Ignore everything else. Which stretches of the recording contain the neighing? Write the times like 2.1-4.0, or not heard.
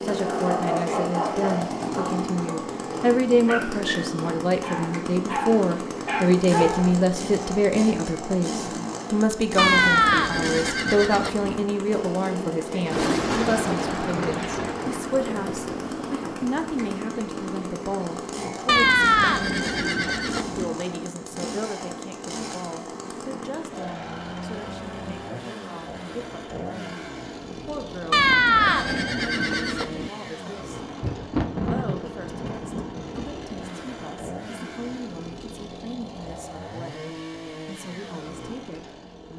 9.6-11.6, 18.6-20.7, 28.1-30.1.